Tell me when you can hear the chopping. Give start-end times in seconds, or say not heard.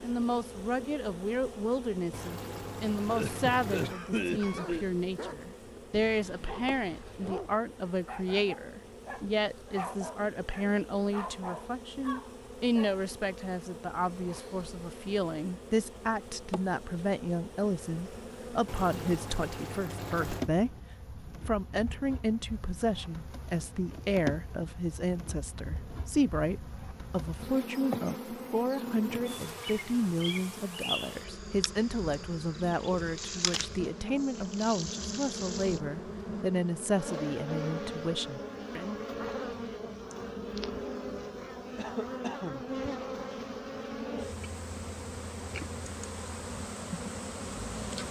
not heard.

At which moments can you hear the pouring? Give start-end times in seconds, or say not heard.
2.1-4.0, 18.6-20.5, 33.1-35.8.